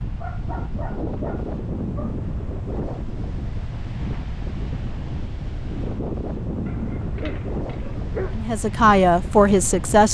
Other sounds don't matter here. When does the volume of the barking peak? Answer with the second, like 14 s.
8 s.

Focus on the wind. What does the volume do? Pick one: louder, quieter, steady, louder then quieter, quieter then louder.
steady.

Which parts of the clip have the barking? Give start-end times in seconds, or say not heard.
0.1-2.2, 6.7-8.4.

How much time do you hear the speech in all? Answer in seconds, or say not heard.
2 s.